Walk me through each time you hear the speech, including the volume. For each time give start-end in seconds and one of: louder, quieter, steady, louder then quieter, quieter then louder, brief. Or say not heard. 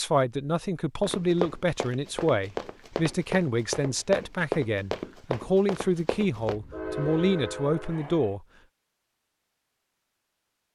0.0-8.4 steady.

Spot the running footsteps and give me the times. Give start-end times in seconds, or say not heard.
1.0-6.5.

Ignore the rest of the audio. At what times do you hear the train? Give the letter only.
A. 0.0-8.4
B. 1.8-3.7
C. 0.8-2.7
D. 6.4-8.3
D.